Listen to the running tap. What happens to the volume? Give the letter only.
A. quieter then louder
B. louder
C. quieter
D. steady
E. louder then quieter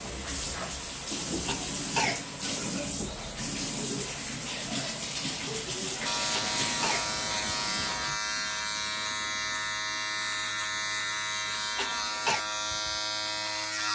D.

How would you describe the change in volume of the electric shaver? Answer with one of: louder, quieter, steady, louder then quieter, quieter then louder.
steady.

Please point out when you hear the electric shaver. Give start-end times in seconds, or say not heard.
6.0-13.9.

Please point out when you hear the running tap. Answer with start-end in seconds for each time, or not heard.
0.0-8.2.